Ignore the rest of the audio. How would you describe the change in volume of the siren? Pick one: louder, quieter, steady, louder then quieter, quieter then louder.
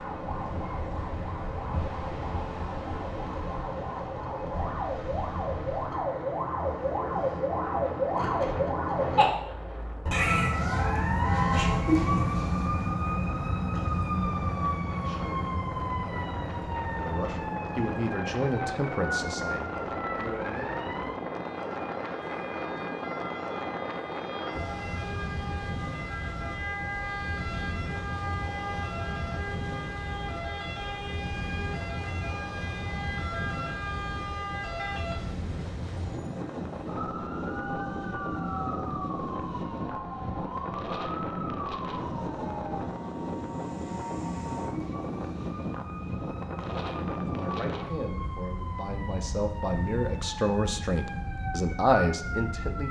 quieter.